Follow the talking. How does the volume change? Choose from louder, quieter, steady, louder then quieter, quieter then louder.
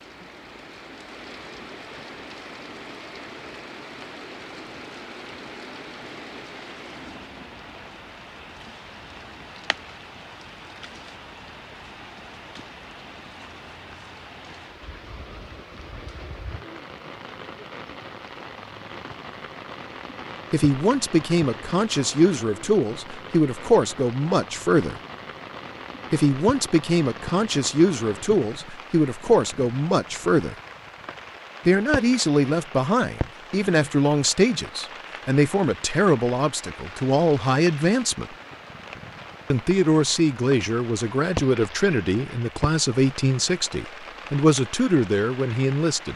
steady.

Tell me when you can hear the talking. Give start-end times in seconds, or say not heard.
20.5-24.9, 26.1-30.6, 31.6-38.3, 39.5-46.1.